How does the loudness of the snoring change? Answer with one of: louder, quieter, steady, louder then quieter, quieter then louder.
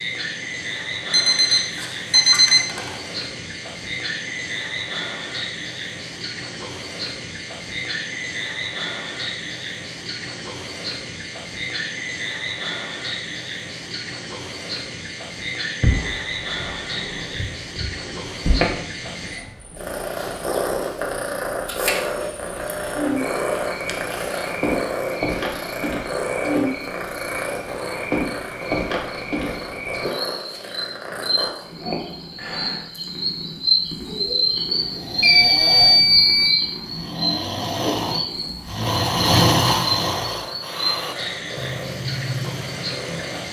louder then quieter.